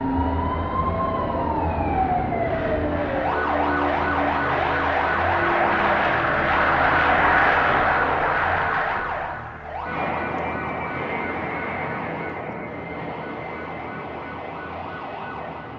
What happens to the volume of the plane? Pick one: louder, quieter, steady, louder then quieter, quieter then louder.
louder then quieter.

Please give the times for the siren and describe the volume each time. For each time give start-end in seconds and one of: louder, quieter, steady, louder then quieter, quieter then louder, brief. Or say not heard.
0.0-15.7 quieter.